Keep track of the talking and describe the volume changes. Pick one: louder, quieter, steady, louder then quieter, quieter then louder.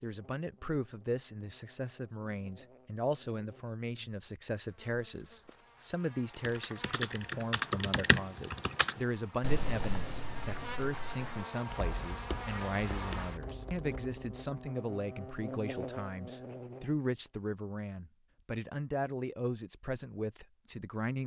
steady.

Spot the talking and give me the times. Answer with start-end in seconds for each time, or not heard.
0.0-21.2.